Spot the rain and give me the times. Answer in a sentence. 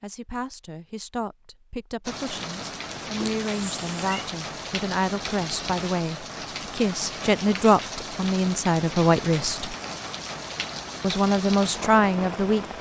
You can hear the rain from 2.0 to 12.7 s.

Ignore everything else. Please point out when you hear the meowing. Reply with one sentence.
You can hear the meowing from 3.2 to 4.3 s.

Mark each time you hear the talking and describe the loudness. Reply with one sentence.
The talking can be heard from 0.0 to 9.8 s, getting louder; and briefly from 11.0 to 12.7 s.